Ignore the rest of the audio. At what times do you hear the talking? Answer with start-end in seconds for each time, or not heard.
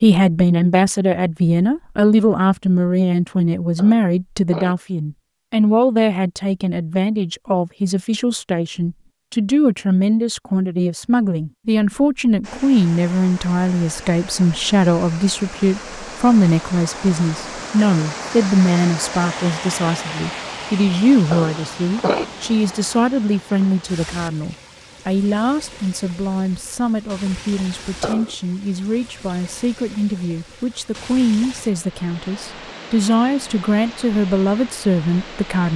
0.0-35.7.